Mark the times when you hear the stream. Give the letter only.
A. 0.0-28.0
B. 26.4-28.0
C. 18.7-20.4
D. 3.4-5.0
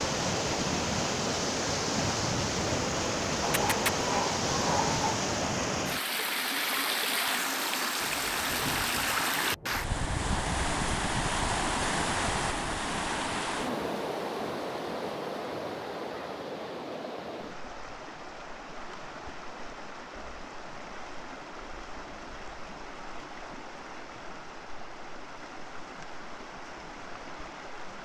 A.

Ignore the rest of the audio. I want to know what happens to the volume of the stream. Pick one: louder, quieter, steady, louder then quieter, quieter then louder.
quieter.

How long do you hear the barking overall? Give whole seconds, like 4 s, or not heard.
2 s.